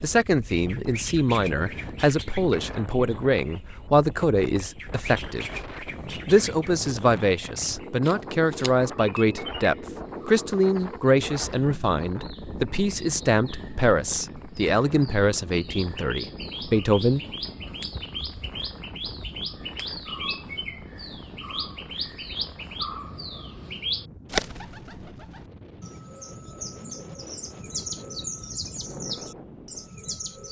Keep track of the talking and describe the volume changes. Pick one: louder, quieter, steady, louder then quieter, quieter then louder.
steady.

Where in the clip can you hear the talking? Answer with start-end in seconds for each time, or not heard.
0.0-5.5, 6.2-17.2.